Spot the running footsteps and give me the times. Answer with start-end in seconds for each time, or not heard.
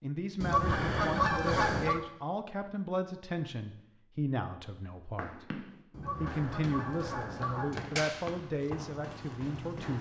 5.2-9.9.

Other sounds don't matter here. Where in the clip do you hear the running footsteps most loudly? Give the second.
8 s.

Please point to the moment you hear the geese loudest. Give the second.
1 s.